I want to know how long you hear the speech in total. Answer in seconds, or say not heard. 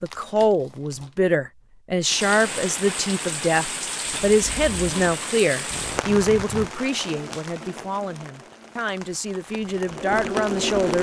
11 s.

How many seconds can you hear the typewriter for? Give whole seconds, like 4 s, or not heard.
not heard.